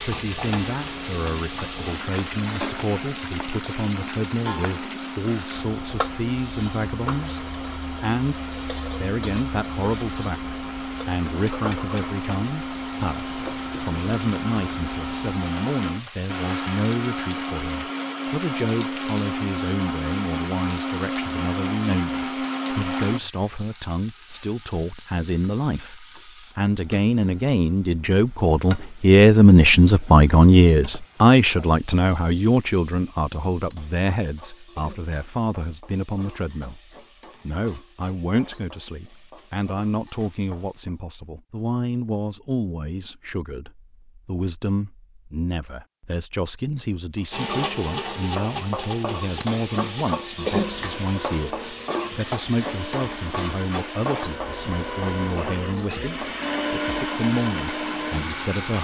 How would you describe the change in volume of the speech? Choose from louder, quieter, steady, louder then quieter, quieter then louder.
louder then quieter.